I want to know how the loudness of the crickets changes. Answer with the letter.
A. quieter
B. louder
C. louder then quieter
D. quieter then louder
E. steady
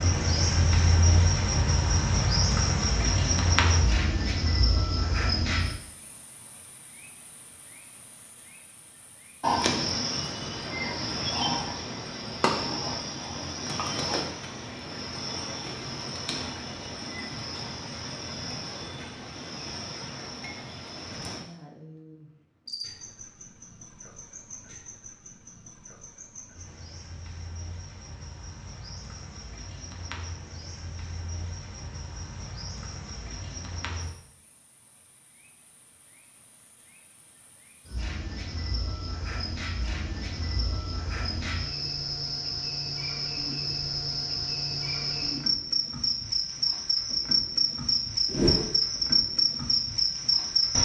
D.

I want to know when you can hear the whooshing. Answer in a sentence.
The whooshing can be heard from 48.3 to 48.8 s.